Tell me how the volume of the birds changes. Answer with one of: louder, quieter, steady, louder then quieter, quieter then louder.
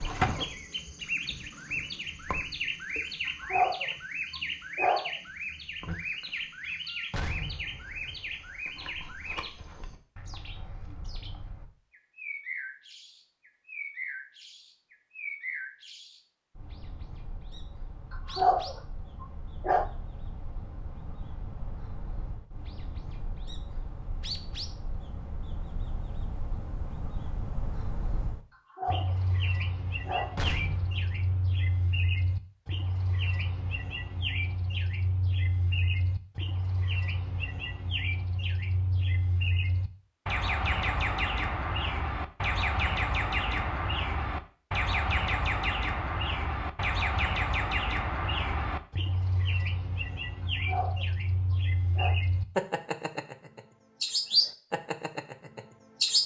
quieter then louder.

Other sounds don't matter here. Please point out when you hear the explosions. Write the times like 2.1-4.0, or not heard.
7.1-8.6, 30.4-31.9.